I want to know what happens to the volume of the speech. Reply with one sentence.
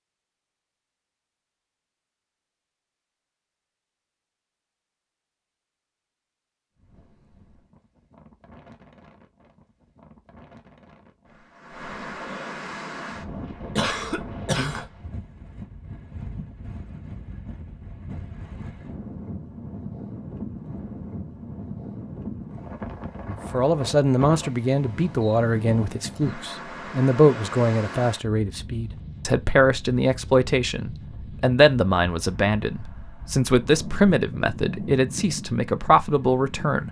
The loudness of the speech stays about the same.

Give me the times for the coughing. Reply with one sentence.
You can hear the coughing from 13.8 to 14.8 s.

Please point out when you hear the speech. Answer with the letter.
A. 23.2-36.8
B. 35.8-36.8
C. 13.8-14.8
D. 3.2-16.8
A.